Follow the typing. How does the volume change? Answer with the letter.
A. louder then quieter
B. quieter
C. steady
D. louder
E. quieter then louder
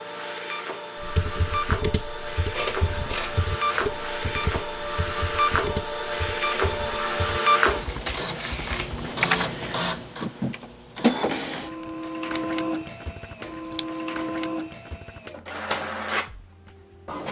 E.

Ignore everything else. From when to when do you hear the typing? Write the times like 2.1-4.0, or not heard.
1.0-10.6.